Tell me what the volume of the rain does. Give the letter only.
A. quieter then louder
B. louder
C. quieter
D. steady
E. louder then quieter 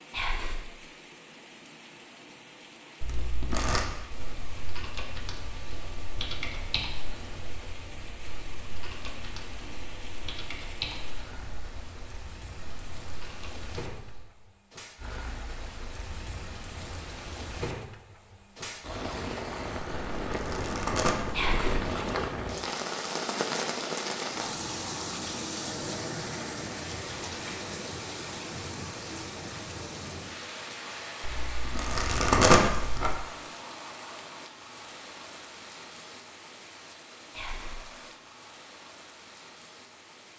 E.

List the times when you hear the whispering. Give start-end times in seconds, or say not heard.
0.1-0.6, 21.3-21.8, 37.3-37.8.